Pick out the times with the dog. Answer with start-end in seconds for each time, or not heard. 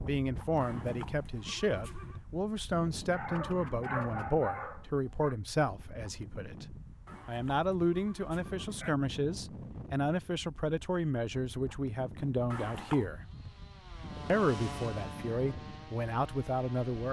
3.1-5.3.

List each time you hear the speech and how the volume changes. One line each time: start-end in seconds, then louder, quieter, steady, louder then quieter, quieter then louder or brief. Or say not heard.
0.0-13.2 steady
14.2-17.0 brief.